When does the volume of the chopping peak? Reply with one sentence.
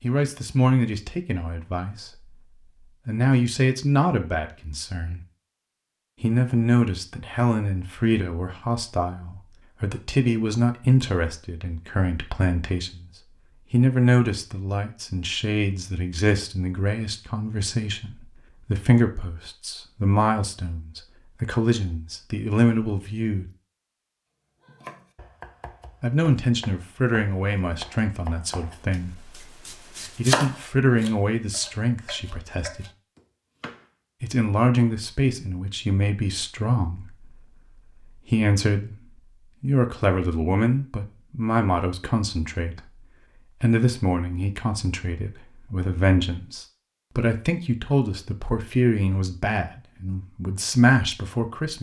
The volume of the chopping peaks at 30 seconds.